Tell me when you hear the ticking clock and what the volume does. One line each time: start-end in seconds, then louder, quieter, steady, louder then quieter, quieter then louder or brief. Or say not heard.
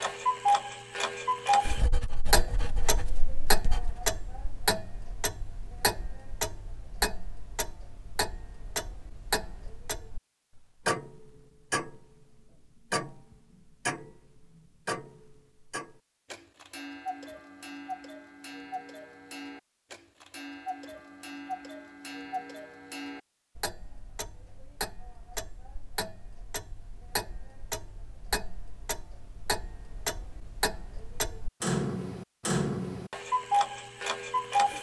0.0-34.7 quieter then louder.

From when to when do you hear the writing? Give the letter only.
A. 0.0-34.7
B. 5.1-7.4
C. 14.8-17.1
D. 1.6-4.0
D.